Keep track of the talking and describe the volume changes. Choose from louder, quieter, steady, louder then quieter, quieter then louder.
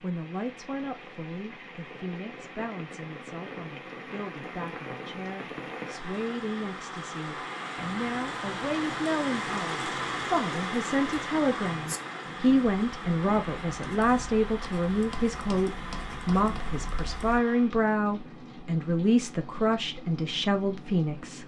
louder.